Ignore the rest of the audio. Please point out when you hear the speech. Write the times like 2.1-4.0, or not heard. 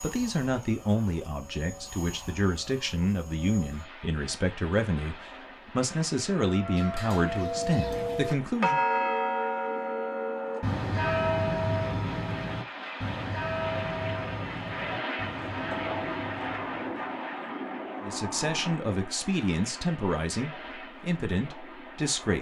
0.0-8.8, 18.0-22.3.